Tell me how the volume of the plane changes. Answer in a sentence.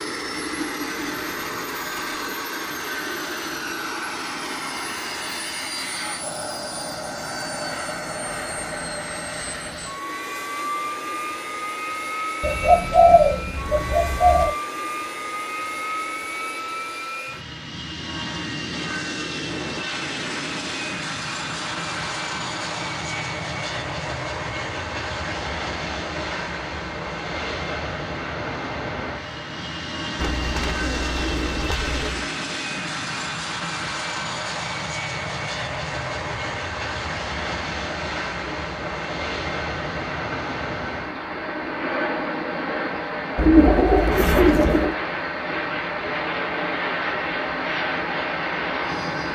The volume of the plane stays about the same.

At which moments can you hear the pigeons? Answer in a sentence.
The pigeons can be heard from 0.5 to 2.4 s, from 12.4 to 14.6 s, from 30.1 to 32.2 s and from 43.4 to 45.0 s.